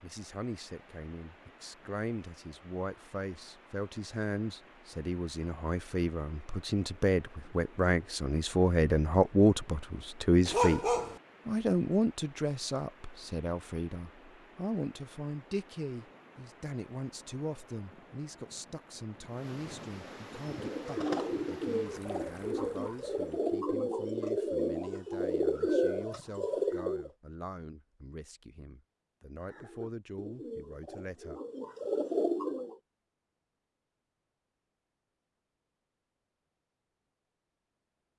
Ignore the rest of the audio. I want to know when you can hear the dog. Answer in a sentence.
The dog can be heard from 10.4 to 11.2 s.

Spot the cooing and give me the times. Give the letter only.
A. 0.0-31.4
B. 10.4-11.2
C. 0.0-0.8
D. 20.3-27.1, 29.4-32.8
D.